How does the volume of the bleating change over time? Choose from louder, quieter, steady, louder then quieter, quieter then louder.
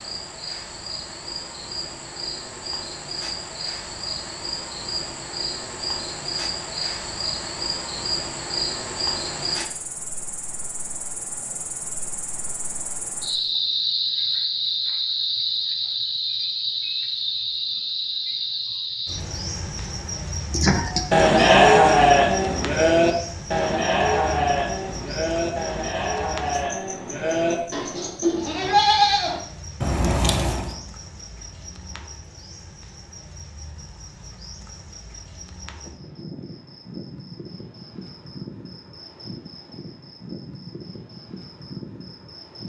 quieter then louder.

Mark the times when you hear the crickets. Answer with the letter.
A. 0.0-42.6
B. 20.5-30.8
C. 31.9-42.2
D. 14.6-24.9
A.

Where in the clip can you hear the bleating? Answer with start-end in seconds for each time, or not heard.
20.5-30.8.